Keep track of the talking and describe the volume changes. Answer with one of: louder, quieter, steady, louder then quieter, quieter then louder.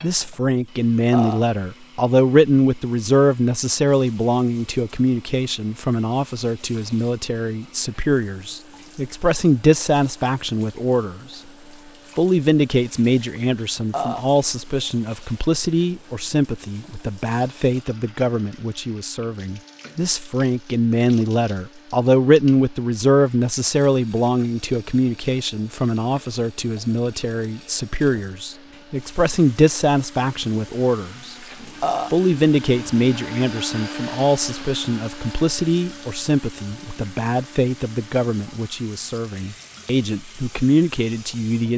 steady.